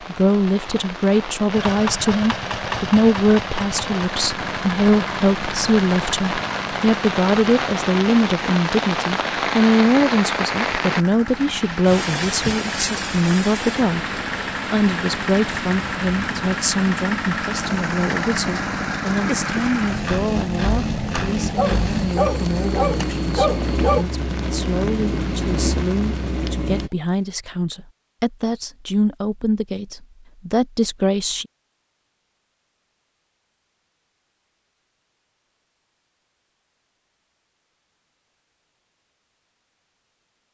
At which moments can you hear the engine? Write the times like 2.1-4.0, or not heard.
1.5-26.9.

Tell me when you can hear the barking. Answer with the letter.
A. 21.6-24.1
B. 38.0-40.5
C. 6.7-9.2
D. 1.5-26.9
A.